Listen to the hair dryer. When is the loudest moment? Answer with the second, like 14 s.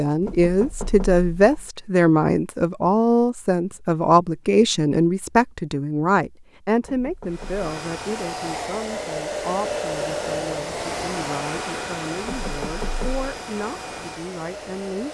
10 s.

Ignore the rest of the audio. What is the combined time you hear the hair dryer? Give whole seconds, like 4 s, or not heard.
8 s.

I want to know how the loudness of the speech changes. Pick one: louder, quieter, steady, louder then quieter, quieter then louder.
quieter.